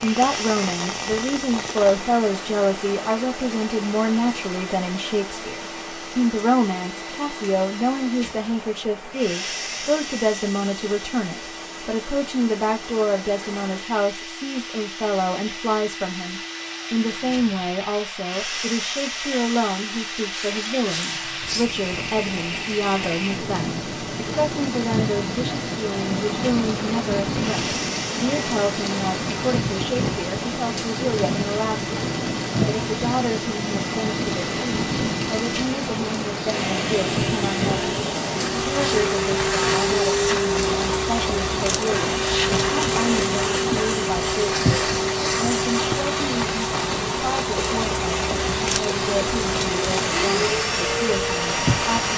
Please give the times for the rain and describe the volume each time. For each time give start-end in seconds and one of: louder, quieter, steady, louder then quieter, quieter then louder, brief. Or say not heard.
0.0-52.1 louder.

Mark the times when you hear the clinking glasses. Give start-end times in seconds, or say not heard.
20.3-21.7.